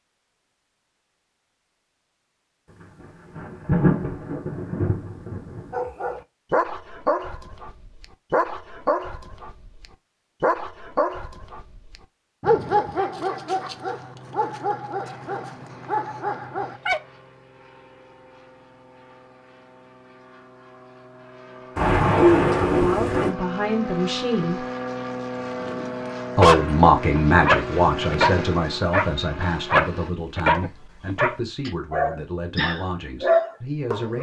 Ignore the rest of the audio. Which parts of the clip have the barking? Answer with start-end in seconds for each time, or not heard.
5.7-17.0, 25.6-34.1.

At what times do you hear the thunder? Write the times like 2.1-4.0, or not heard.
3.4-5.7, 21.8-23.3.